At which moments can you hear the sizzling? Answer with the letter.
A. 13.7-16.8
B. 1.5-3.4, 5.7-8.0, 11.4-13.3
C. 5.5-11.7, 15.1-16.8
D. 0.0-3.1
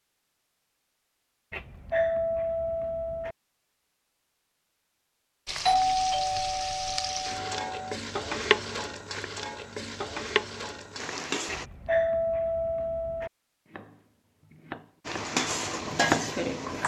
C.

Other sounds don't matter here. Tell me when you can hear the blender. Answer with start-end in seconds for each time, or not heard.
not heard.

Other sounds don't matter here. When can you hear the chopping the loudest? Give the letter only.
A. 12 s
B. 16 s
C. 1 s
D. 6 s
B.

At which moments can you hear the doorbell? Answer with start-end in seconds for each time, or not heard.
1.5-3.4, 5.7-8.0, 11.4-13.3.